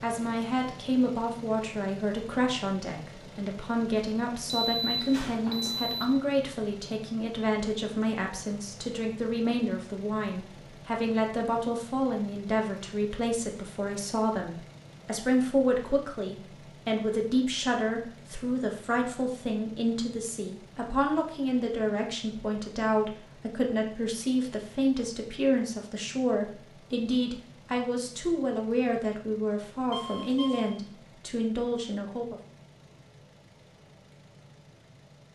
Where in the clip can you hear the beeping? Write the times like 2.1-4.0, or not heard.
4.5-6.2, 29.9-30.7.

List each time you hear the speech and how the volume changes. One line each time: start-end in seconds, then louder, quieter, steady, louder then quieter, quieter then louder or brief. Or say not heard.
0.0-32.4 steady.